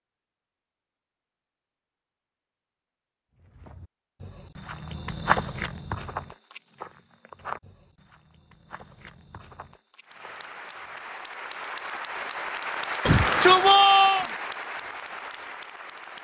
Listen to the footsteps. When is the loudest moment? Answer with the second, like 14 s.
5 s.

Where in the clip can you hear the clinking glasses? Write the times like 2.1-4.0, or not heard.
not heard.